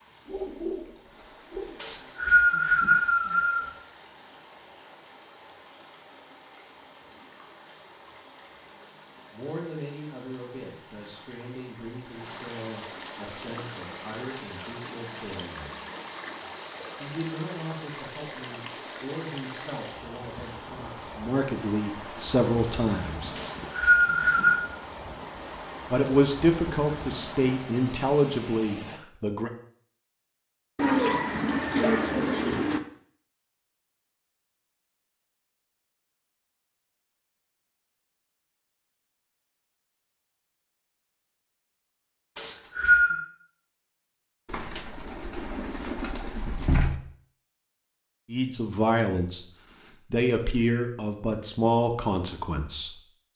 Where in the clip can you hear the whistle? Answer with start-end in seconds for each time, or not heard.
1.8-3.7, 23.4-24.6, 42.4-43.2.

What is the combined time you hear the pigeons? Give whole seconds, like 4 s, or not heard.
6 s.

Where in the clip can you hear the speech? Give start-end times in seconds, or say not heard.
9.3-15.7, 16.9-23.4, 25.9-29.5, 48.3-49.5, 50.1-53.3.